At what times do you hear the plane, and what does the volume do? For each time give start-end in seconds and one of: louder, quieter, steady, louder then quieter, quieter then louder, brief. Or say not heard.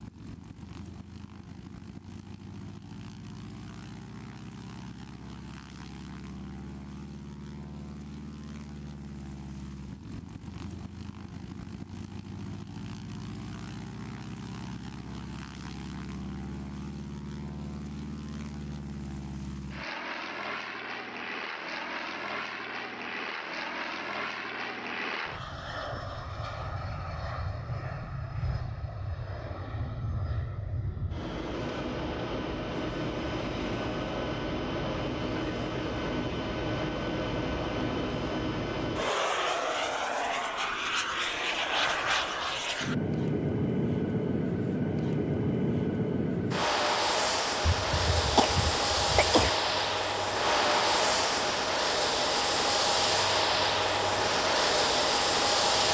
0.0-55.8 louder.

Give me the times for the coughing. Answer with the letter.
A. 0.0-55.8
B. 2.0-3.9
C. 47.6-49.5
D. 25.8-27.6
C.